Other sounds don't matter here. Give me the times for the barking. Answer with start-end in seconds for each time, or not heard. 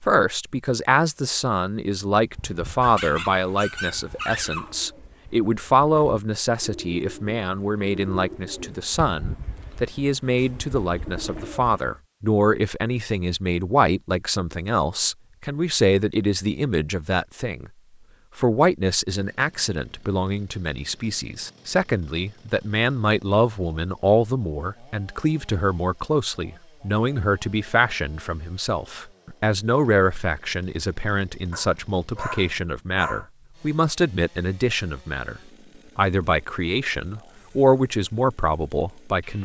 2.8-4.8, 31.5-33.2.